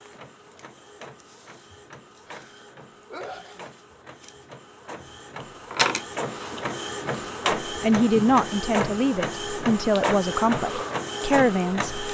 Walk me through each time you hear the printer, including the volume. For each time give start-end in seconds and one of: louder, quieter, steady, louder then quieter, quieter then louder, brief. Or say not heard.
0.0-12.0 louder.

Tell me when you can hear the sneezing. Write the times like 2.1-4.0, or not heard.
2.2-3.7.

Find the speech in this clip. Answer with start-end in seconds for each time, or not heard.
7.7-11.9.